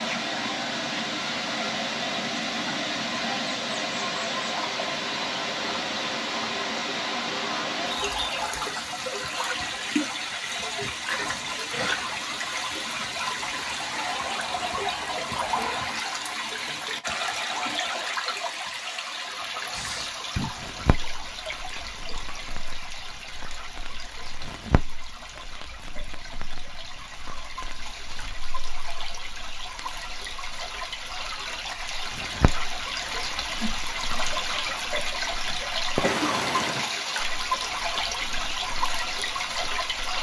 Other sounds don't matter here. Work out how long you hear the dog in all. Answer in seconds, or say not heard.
not heard.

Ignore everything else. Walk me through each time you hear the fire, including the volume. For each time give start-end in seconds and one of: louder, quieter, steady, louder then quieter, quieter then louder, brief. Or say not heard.
19.7-40.1 quieter then louder.